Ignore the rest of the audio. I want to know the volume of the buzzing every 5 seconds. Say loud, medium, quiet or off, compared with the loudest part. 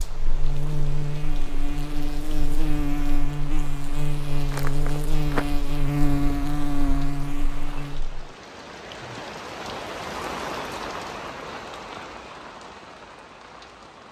loud, loud, off.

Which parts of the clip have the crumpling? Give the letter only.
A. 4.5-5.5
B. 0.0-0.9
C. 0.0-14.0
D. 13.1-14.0
A.